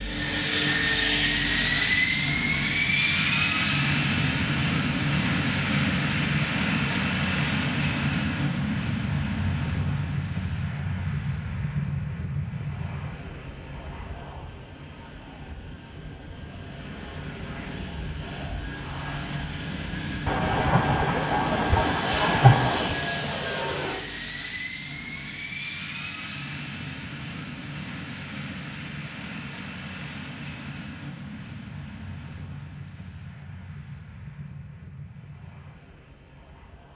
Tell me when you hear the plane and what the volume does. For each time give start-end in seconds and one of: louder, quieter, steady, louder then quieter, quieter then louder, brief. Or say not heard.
0.0-36.9 quieter.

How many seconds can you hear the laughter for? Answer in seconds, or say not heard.
3 s.